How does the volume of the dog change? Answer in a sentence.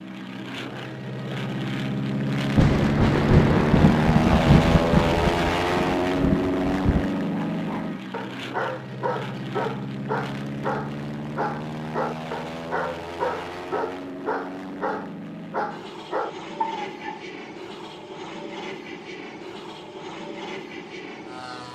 The loudness of the dog stays about the same.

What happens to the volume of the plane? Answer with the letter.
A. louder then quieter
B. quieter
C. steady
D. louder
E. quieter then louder
B.